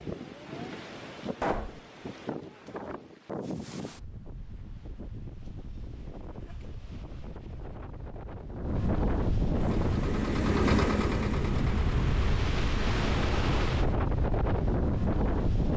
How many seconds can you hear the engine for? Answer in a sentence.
The engine can be heard for 4 seconds in total.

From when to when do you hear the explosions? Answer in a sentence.
The explosions can be heard from 1.4 to 1.8 s.